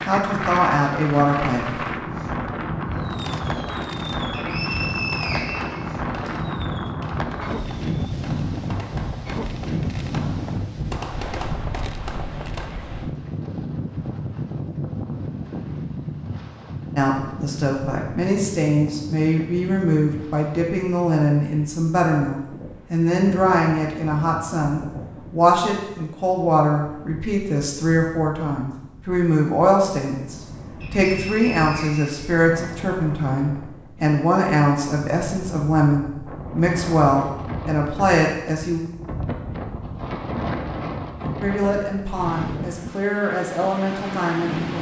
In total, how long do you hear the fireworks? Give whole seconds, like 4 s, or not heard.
10 s.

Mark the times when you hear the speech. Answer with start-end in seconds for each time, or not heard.
0.0-1.8, 16.9-38.8, 41.4-44.7.